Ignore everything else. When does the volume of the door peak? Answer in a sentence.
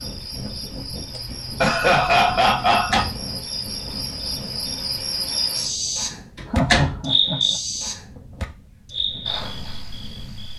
The volume of the door peaks at 7 seconds.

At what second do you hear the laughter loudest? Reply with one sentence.
The volume of the laughter peaks at 2 seconds.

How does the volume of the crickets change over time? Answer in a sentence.
The loudness of the crickets goes up, then down.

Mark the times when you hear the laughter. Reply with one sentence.
The laughter can be heard from 1.1 to 3.0 s and from 6.5 to 7.5 s.